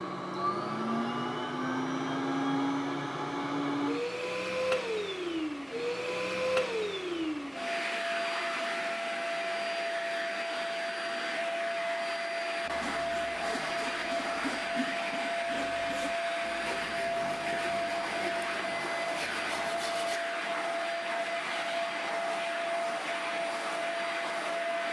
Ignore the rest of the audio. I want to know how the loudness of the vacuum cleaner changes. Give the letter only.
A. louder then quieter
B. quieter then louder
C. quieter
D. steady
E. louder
D.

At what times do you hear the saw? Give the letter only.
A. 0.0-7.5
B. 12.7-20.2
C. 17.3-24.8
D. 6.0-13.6
B.